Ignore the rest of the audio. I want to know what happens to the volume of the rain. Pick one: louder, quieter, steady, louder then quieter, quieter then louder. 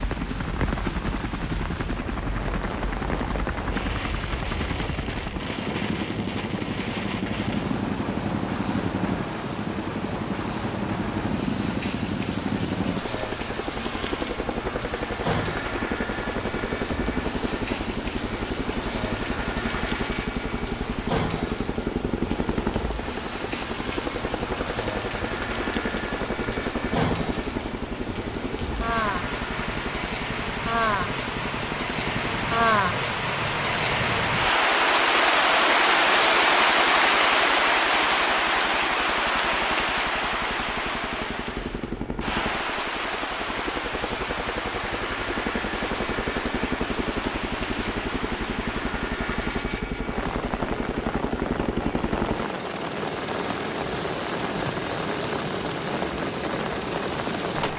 louder then quieter.